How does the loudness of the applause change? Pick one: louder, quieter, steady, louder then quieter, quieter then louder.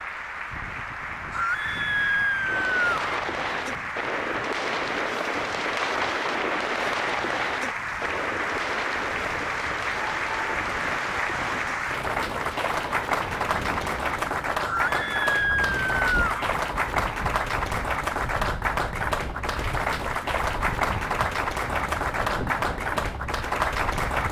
louder.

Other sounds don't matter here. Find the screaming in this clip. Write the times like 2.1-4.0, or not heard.
1.3-3.1, 14.7-16.6.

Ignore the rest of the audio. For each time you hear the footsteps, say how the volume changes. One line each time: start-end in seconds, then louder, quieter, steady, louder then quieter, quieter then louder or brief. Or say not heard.
not heard.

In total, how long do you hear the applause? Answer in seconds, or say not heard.
24 s.